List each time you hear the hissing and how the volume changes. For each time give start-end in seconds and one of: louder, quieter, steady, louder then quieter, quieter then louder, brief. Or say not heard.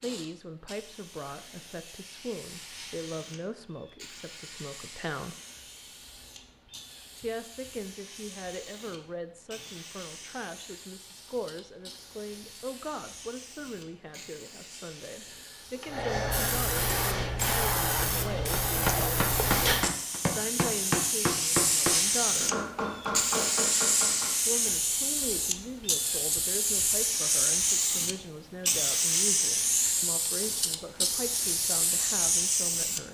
0.0-33.0 louder.